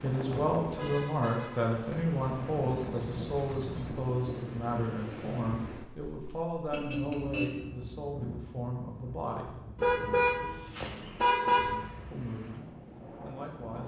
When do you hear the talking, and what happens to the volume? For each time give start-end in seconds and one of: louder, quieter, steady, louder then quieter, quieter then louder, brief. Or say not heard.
0.0-9.6 quieter
12.0-13.8 brief.